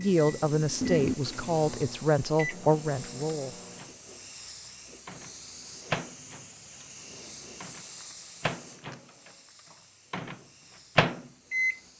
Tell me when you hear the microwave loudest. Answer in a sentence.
The loudest moment of the microwave is at 11 seconds.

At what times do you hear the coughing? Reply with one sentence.
The coughing can't be heard in this clip.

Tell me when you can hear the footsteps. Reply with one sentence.
You can't hear the footsteps here.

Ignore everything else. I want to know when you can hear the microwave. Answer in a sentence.
The microwave can be heard from 0.0 to 4.0 s, from 5.0 to 6.5 s, from 7.6 to 9.0 s and from 10.1 to 11.8 s.